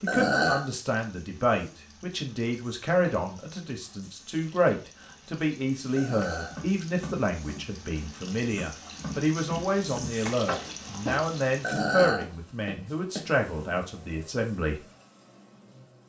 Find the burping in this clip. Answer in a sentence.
You can hear the burping from 0.1 to 0.7 s, from 6.0 to 6.5 s and from 11.6 to 12.2 s.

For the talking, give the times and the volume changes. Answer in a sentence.
The talking can be heard from 0.0 to 14.8 s, at a steady volume.